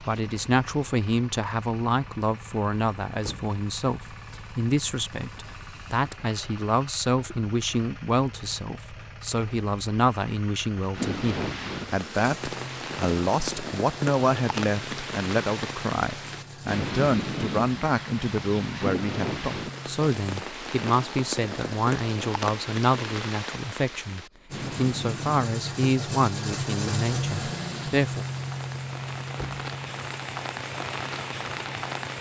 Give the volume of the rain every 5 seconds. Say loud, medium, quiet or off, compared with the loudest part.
off, off, loud, loud, loud, medium, loud.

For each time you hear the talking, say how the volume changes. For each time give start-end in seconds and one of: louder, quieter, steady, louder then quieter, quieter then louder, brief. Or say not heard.
0.0-28.2 steady.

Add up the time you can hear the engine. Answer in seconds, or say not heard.
28 s.